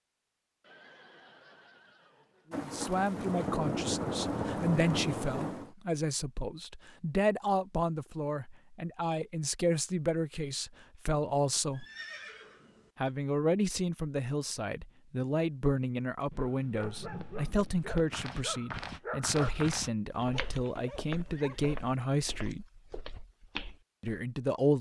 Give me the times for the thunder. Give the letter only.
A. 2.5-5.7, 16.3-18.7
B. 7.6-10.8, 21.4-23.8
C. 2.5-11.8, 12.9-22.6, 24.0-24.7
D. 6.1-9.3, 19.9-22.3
A.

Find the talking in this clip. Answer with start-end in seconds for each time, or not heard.
2.5-11.8, 12.9-22.6, 24.0-24.7.